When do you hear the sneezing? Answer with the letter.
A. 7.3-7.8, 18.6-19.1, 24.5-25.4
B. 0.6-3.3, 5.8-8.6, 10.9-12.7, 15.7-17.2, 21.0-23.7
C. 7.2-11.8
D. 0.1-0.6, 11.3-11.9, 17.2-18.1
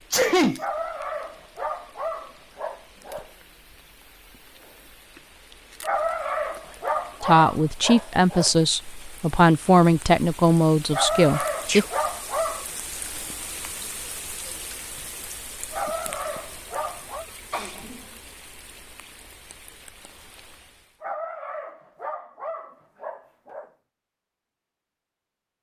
D.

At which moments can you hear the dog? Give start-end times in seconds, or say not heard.
0.6-3.3, 5.8-8.6, 10.9-12.7, 15.7-17.2, 21.0-23.7.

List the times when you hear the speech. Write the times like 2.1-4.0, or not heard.
7.2-11.8.